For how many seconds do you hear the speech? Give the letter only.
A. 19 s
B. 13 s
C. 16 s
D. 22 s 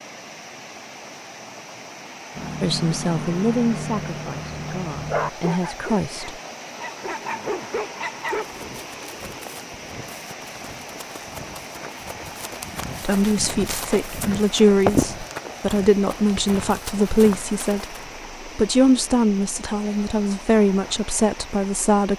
B.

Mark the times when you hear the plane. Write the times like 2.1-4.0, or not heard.
not heard.